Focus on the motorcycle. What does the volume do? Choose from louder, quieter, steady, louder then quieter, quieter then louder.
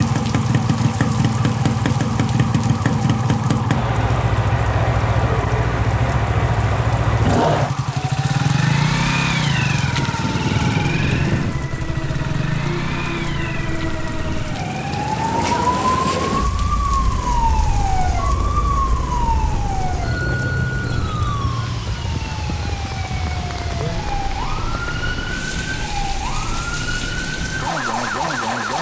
quieter.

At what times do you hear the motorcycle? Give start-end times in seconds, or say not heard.
0.0-21.3.